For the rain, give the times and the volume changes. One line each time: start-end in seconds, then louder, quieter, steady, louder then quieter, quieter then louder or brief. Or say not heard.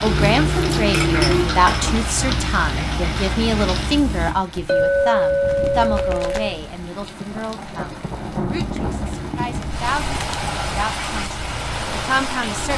0.0-12.7 quieter then louder.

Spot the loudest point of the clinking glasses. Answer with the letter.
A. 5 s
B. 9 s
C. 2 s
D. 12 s
A.